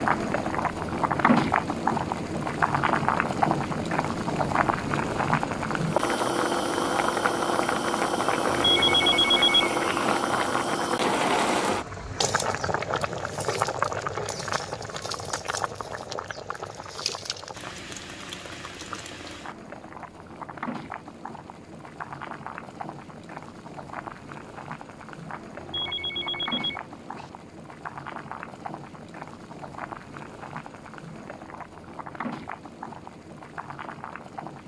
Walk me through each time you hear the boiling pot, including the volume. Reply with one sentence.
The boiling pot can be heard from 0.0 to 34.6 s, getting quieter.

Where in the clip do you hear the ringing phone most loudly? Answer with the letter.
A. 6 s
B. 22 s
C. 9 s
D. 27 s
C.